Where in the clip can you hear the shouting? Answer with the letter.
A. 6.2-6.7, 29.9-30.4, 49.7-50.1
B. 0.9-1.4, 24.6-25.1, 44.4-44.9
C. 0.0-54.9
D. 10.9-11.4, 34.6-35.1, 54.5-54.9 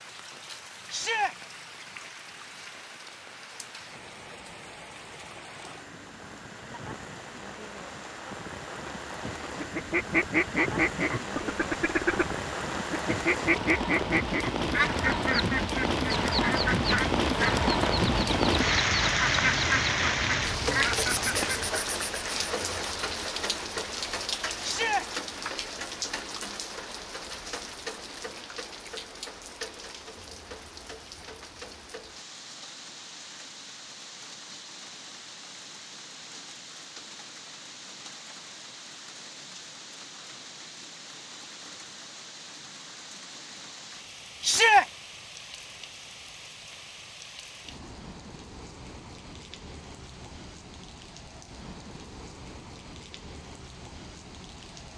B.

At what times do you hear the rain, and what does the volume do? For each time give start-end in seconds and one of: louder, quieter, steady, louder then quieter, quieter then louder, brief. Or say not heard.
0.0-54.9 louder then quieter.